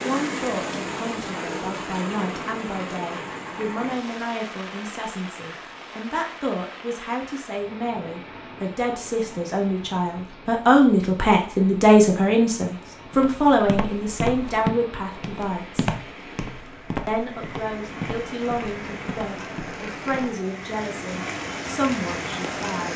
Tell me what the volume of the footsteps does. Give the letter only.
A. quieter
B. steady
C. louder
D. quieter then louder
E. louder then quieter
A.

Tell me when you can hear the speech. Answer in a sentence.
The speech can be heard from 0.0 to 15.9 s and from 17.1 to 22.9 s.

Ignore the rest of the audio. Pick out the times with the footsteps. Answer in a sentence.
The footsteps can be heard from 13.1 to 20.4 s.